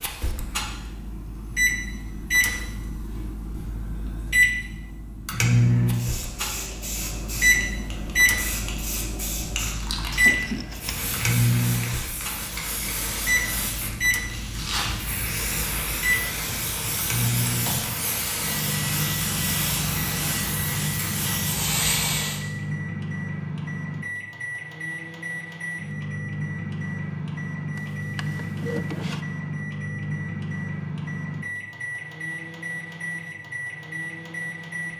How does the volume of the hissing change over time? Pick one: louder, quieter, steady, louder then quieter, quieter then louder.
louder.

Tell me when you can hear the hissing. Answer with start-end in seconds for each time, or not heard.
5.8-22.4.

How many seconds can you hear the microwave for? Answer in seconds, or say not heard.
35 s.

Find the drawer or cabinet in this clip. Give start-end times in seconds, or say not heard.
10.1-11.3, 27.8-29.2.